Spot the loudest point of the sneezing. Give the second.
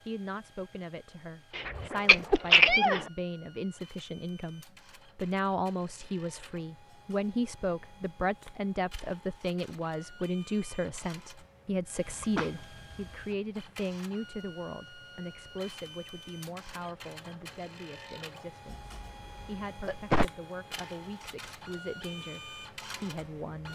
3 s.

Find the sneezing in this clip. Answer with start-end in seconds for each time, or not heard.
1.6-3.0, 12.1-13.2, 18.7-20.2.